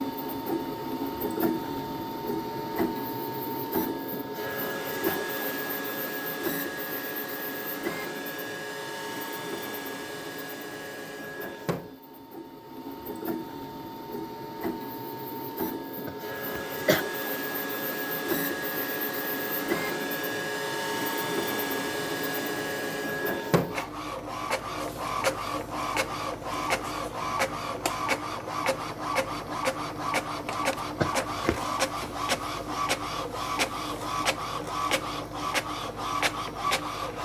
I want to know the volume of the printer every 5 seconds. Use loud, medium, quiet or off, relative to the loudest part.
loud, loud, medium, loud, loud, loud, loud, loud.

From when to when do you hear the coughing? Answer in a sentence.
You can hear the coughing from 16.1 to 17.1 s and from 31.0 to 31.6 s.